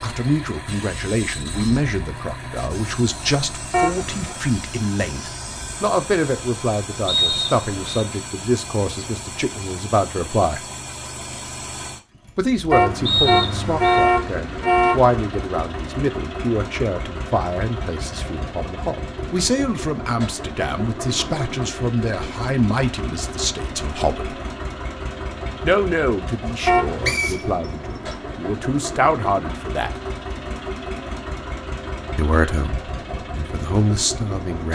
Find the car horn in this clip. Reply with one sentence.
The car horn can be heard from 3.7 to 4.3 s, from 12.7 to 15.2 s and from 26.6 to 27.2 s.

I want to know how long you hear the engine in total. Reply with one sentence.
The engine can be heard for 35 seconds in total.